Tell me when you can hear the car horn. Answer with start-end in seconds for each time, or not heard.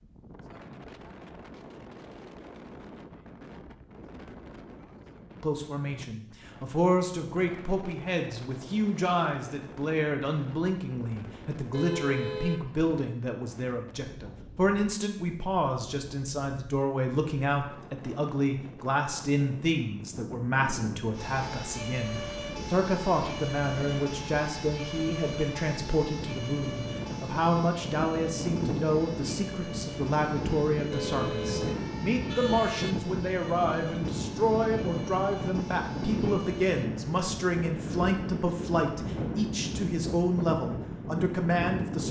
11.7-12.9, 30.9-33.0.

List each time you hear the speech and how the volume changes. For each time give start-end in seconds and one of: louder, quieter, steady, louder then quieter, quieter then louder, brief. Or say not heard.
5.4-42.0 steady.